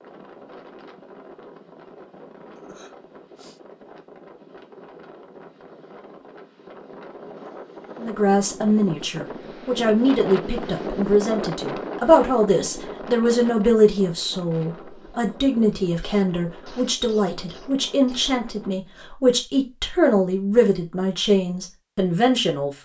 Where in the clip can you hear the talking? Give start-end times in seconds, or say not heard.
8.0-22.7.